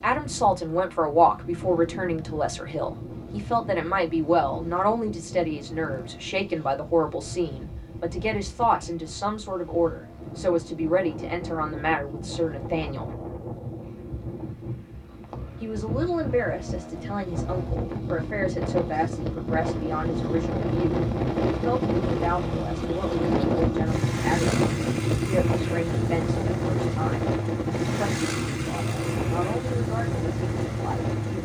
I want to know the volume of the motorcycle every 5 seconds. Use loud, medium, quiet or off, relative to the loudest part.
quiet, quiet, quiet, medium, loud, loud, loud.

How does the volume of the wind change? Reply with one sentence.
The volume of the wind goes up.